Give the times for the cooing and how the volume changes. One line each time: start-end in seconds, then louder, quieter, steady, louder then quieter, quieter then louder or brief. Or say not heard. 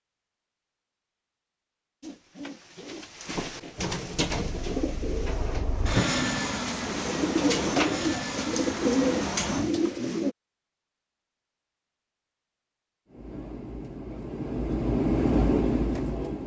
2.0-10.3 louder.